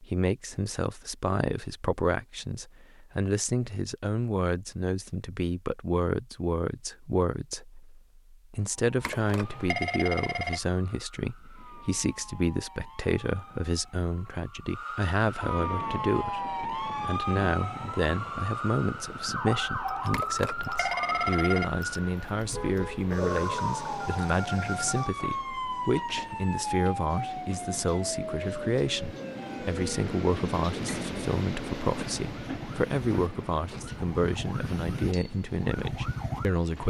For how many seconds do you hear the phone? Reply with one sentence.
The phone can be heard for 3 seconds in total.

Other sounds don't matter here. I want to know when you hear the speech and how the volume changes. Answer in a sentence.
The speech can be heard from 0.0 to 36.8 s, at a steady volume.